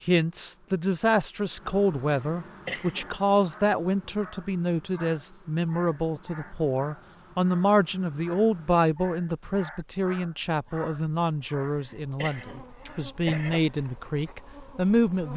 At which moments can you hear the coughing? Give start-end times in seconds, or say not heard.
2.4-3.1, 11.6-13.6.